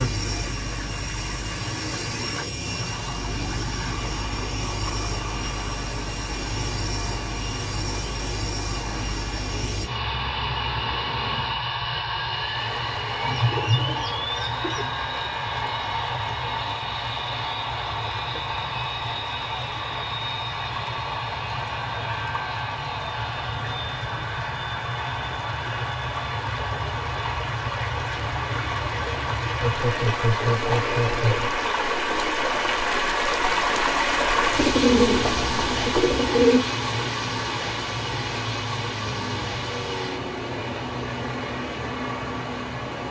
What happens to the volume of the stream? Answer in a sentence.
The volume of the stream goes up.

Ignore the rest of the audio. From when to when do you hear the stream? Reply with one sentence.
You can hear the stream from 0.0 to 43.0 s.